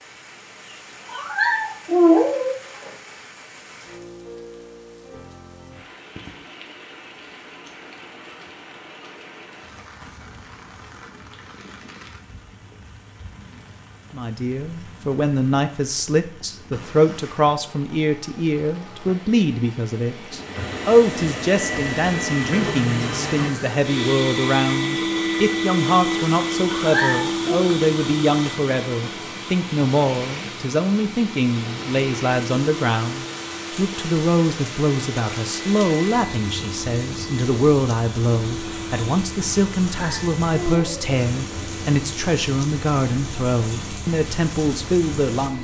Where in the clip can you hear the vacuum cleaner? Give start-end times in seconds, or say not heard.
20.3-45.5.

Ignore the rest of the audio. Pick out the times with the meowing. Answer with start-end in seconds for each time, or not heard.
1.1-2.5, 26.6-27.5, 39.9-41.1.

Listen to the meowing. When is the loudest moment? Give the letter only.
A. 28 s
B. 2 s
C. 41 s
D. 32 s
B.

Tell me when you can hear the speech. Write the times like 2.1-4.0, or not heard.
14.1-45.5.